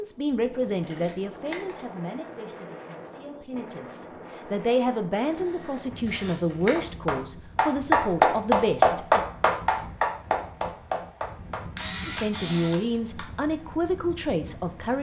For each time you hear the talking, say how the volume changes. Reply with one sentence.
You can hear the talking from 0.0 to 9.2 s, getting quieter then louder; and briefly from 12.1 to 14.9 s.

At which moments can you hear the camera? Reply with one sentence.
The camera can be heard from 0.8 to 1.7 s, from 5.2 to 6.8 s and from 11.8 to 12.8 s.